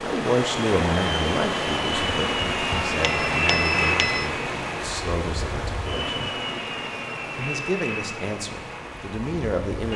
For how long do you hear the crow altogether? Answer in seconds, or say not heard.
not heard.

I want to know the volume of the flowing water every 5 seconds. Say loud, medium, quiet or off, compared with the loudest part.
loud, medium.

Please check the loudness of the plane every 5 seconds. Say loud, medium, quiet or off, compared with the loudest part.
loud, medium.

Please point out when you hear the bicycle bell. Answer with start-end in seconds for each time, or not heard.
3.0-4.3.